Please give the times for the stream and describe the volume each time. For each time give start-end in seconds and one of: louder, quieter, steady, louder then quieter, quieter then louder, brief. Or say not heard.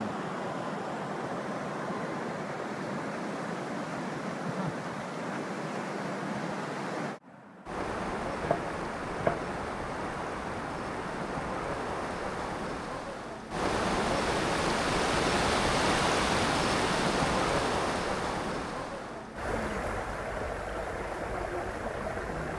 0.0-22.5 louder then quieter.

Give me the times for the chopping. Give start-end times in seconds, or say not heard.
8.3-9.6.